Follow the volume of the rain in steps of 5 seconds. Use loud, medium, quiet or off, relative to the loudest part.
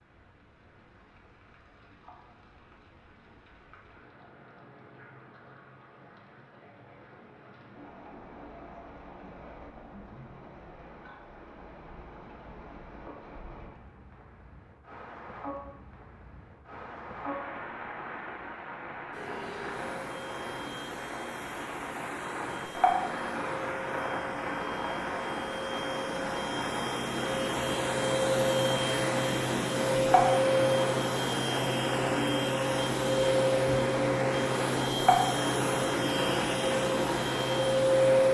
quiet, quiet, quiet, medium, loud, loud, loud, loud.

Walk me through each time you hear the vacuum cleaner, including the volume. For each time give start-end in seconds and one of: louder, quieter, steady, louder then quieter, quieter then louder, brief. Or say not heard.
19.1-38.2 louder.